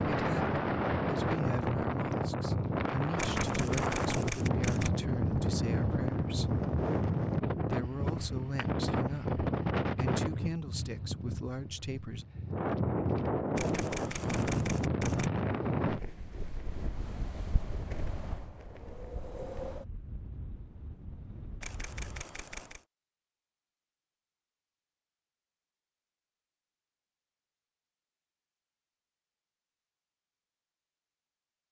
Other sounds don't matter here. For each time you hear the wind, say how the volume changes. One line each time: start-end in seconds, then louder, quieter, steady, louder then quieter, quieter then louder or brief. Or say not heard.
0.0-22.2 quieter.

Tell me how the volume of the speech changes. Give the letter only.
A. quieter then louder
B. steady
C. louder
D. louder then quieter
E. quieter
B.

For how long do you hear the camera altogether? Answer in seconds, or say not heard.
5 s.